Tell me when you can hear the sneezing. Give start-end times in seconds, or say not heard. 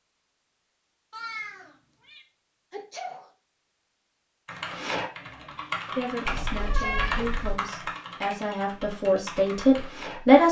2.7-3.2, 6.6-7.0.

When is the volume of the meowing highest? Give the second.
7 s.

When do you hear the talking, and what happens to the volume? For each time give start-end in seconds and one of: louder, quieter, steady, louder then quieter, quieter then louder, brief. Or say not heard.
6.0-10.4 louder.